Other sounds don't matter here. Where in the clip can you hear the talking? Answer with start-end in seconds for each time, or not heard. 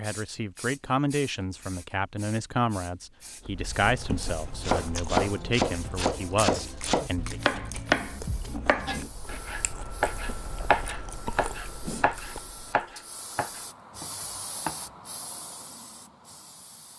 0.0-7.4.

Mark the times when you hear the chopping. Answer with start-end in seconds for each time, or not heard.
4.5-14.9.